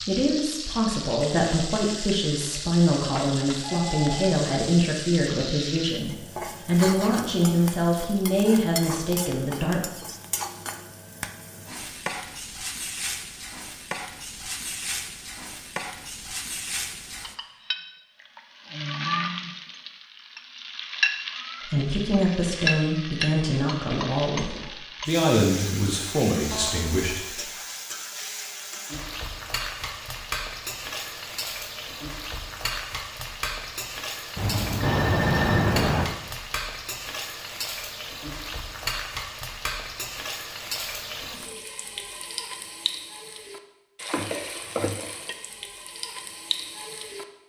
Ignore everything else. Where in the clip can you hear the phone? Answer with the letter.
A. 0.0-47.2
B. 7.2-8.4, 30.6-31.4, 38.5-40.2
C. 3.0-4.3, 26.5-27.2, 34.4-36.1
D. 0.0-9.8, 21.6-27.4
C.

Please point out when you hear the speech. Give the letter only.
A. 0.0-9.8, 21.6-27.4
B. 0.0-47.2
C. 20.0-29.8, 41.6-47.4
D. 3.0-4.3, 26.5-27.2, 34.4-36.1
A.